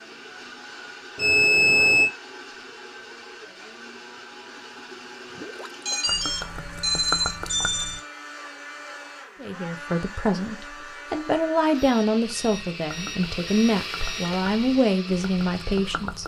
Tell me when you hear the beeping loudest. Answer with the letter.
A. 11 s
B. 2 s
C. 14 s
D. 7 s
B.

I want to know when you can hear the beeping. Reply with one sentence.
You can hear the beeping from 1.1 to 2.1 s, from 5.7 to 8.0 s and from 11.8 to 14.4 s.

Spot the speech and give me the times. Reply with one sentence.
You can hear the speech from 9.4 to 16.2 s.